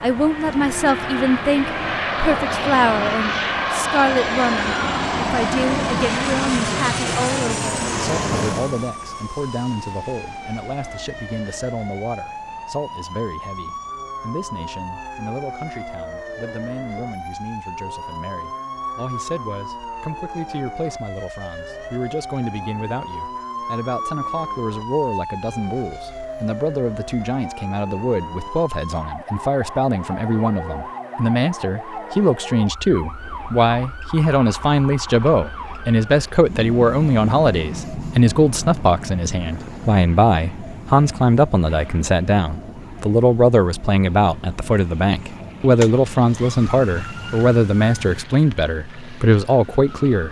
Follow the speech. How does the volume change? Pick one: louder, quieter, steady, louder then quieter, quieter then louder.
quieter then louder.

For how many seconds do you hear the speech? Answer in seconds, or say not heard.
50 s.